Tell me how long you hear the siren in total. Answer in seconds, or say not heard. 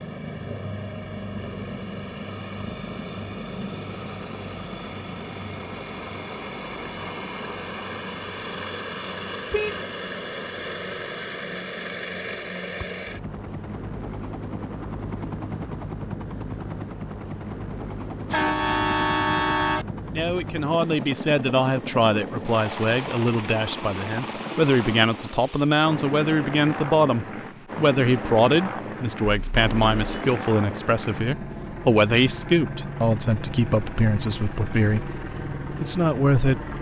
not heard.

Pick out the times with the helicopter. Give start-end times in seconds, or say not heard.
0.0-36.7.